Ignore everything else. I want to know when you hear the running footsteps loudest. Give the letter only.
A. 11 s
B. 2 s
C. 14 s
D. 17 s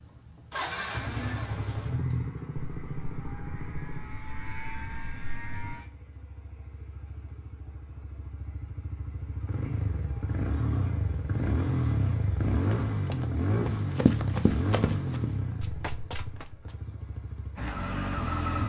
C.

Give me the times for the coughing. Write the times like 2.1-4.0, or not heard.
not heard.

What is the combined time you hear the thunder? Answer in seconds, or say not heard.
3 s.